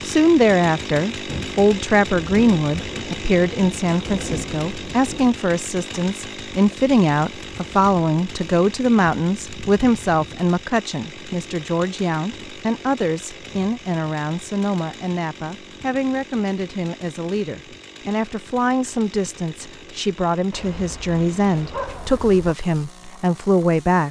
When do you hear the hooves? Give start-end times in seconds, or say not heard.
not heard.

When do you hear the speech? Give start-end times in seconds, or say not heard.
0.0-24.0.